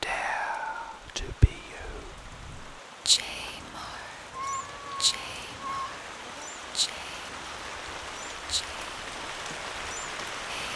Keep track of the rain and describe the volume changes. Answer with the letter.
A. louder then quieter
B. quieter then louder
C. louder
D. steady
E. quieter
C.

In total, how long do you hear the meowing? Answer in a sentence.
The meowing can be heard for 2 seconds in total.